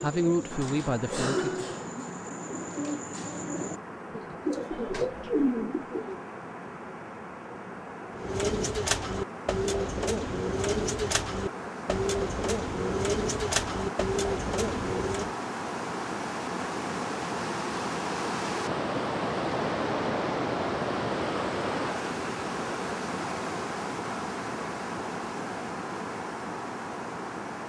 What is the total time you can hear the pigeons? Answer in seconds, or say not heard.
13 s.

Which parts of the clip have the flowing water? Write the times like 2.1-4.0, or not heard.
0.0-27.6.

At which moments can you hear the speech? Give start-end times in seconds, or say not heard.
0.0-1.6.